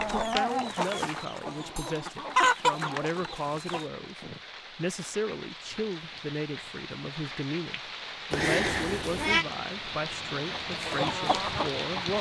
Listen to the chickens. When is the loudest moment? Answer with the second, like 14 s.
3 s.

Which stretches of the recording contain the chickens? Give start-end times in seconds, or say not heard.
0.0-3.9, 10.3-12.1.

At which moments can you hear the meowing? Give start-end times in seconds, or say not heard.
8.3-9.4.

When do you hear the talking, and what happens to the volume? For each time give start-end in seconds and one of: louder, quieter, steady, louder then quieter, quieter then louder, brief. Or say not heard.
0.2-12.1 steady.